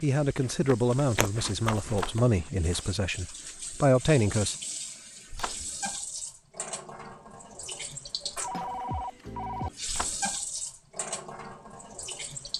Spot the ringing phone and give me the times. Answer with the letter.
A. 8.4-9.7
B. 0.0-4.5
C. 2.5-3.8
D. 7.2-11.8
A.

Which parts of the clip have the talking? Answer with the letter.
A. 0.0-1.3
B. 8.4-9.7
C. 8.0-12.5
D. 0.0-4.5
D.